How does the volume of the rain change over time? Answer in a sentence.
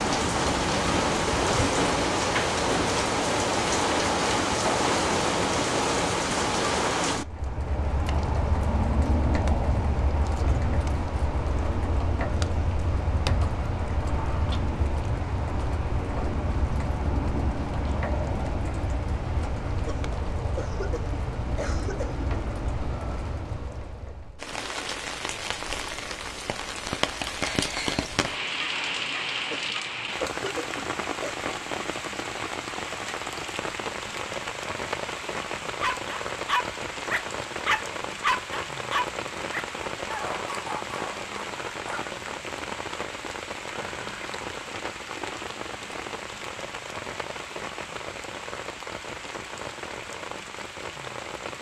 The loudness of the rain goes down.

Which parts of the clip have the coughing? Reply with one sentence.
You can hear the coughing from 19.9 to 22.2 s and from 29.5 to 31.4 s.